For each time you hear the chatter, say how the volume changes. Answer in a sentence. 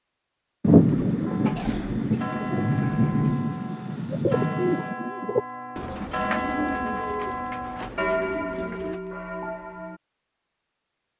The chatter can't be heard in this clip.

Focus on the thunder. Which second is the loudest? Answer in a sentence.
The loudest moment of the thunder is at 1 second.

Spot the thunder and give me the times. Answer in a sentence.
You can hear the thunder from 0.6 to 5.0 s.